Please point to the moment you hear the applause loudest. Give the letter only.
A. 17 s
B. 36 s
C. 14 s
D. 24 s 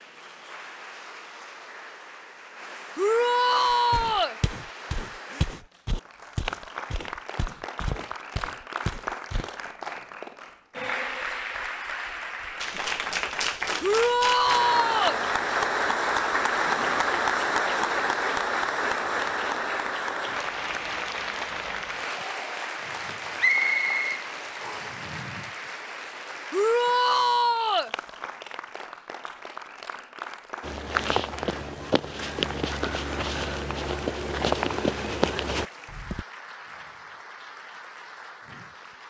A.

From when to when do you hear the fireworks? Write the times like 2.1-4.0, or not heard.
not heard.